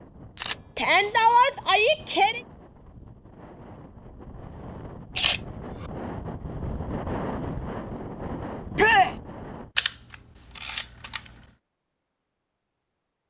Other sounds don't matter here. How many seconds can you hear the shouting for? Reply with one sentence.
You can hear the shouting for 2 seconds altogether.